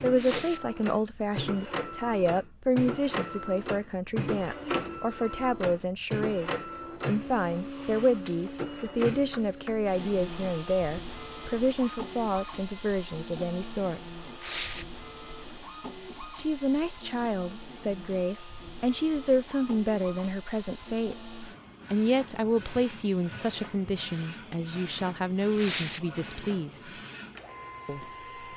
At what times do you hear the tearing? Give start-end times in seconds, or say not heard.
0.1-0.6, 14.4-14.8, 25.6-26.0.